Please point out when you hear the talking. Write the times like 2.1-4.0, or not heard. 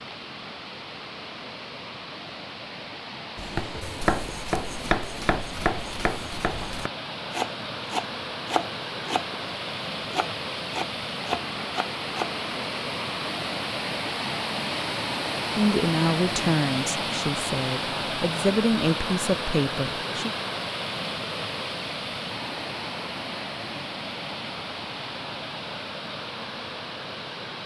15.6-20.3.